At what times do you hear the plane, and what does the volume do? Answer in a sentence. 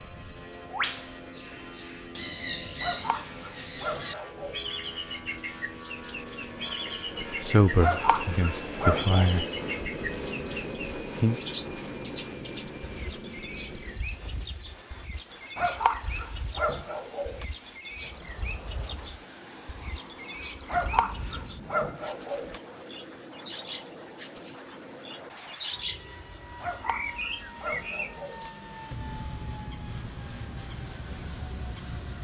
You can hear the plane from 0.0 to 32.1 s, getting louder then quieter.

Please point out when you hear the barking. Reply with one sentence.
The barking can be heard from 2.8 to 4.6 s, from 7.8 to 9.4 s, from 15.6 to 17.4 s, from 20.6 to 22.6 s and from 26.6 to 28.5 s.